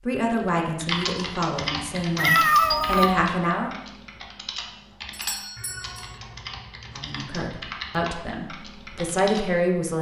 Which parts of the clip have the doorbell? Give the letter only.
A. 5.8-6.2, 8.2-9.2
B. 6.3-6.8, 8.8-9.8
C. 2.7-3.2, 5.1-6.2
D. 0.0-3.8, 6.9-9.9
C.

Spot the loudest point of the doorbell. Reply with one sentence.
The volume of the doorbell peaks at 3 seconds.